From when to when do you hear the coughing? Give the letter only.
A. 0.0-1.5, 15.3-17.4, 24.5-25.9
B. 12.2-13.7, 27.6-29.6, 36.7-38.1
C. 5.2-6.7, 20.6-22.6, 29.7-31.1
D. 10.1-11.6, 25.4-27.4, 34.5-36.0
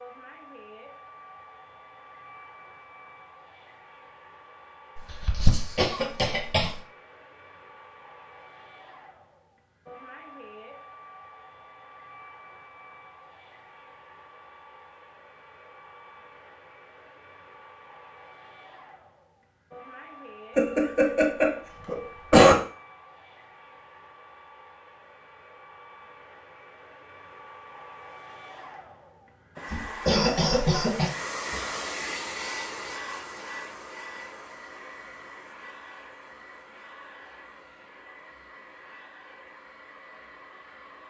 C.